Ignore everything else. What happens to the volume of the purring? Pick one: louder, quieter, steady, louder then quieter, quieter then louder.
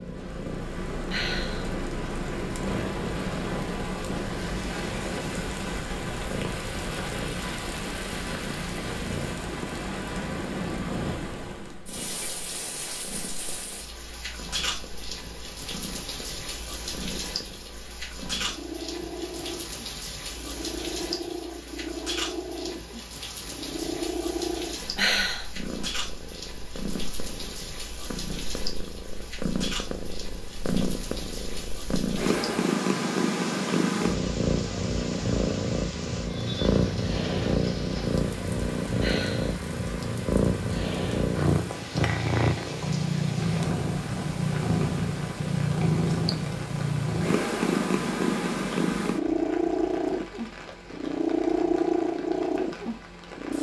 louder.